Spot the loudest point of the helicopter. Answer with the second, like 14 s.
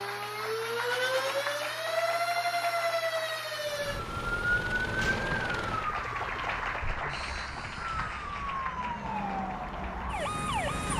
5 s.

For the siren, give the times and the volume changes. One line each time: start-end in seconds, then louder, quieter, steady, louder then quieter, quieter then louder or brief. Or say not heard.
0.0-10.9 quieter then louder.